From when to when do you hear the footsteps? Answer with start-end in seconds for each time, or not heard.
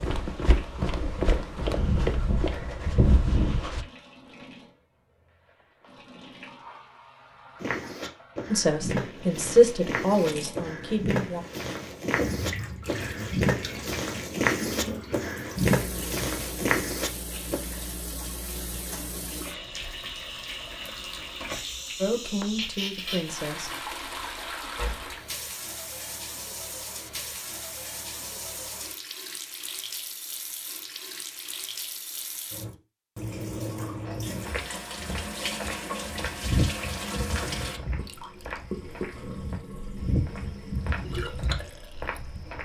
0.0-3.9, 7.5-17.6, 34.0-42.6.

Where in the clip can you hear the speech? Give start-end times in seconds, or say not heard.
8.5-11.4, 22.0-23.7.